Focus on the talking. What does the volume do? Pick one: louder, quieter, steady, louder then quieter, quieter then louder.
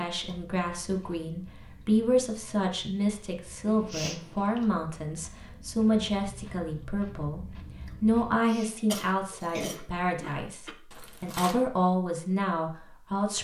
steady.